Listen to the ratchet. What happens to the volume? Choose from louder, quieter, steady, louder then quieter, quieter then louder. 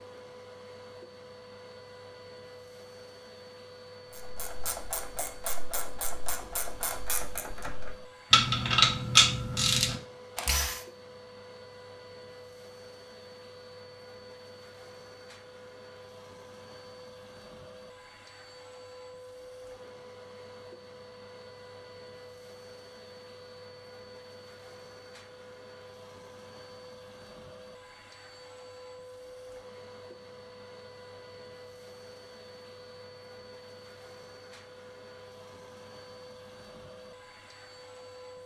louder then quieter.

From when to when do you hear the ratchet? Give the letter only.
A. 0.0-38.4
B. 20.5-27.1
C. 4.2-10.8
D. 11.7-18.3
C.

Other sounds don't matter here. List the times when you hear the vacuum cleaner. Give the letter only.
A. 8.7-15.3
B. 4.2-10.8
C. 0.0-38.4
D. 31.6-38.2
C.